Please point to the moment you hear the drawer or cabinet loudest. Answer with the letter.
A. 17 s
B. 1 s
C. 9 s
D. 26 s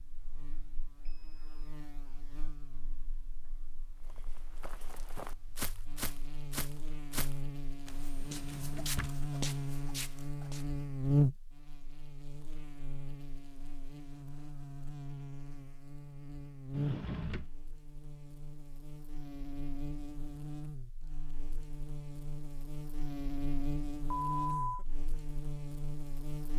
A.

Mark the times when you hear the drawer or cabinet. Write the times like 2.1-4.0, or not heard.
8.2-9.2, 16.7-17.5.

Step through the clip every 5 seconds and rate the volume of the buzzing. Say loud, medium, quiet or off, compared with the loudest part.
quiet, medium, loud, medium, medium, medium.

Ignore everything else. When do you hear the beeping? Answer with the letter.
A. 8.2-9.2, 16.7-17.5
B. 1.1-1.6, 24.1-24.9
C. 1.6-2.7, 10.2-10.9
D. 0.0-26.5
B.